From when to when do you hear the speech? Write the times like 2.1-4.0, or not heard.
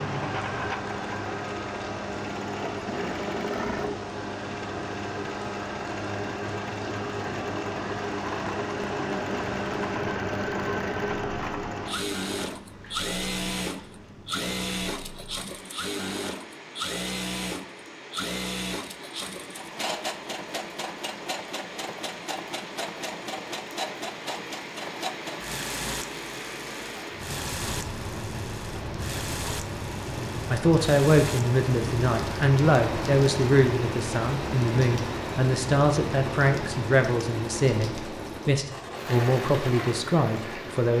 30.5-40.9.